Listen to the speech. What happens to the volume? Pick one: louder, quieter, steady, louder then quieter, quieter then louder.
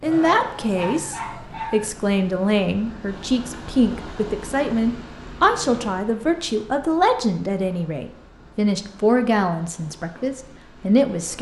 steady.